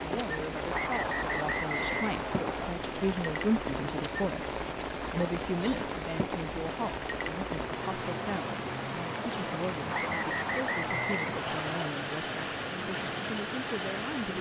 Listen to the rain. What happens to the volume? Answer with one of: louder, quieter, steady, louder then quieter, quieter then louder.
steady.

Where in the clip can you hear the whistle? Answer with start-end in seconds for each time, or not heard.
0.7-2.8, 9.9-11.9.